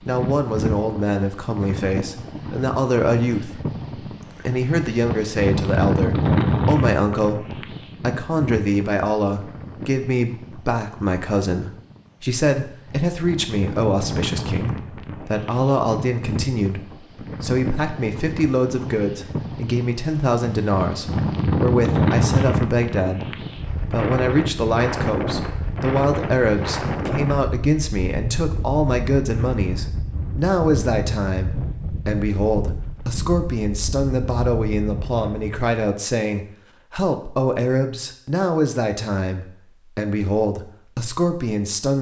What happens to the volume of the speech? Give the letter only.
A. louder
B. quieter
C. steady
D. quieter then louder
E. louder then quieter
C.